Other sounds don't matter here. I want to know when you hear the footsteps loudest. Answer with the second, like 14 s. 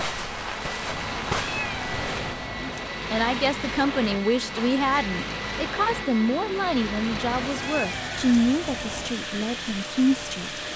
1 s.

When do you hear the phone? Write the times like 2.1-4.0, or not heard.
not heard.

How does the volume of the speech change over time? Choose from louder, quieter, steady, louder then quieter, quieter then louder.
steady.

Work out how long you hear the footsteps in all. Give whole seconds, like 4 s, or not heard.
2 s.